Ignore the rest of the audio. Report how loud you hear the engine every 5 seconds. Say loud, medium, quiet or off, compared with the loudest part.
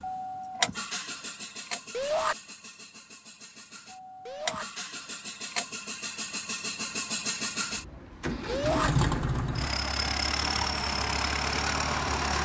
medium, loud, loud.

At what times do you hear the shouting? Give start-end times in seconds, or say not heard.
1.9-2.4, 4.2-4.7, 8.4-8.9.